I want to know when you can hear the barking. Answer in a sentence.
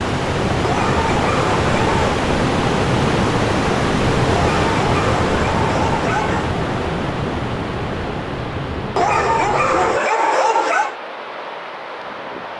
The barking can be heard from 0.6 to 2.2 s, from 4.3 to 6.5 s and from 8.9 to 10.9 s.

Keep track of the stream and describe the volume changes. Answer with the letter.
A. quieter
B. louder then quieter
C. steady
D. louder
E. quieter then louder
A.